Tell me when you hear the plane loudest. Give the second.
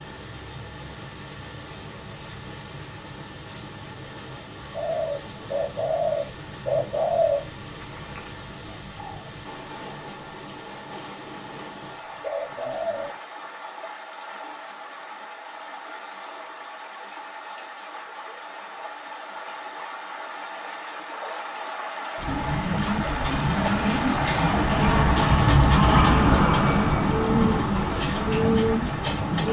26 s.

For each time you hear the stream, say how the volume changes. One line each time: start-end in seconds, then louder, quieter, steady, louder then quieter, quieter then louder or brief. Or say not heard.
0.0-29.4 louder.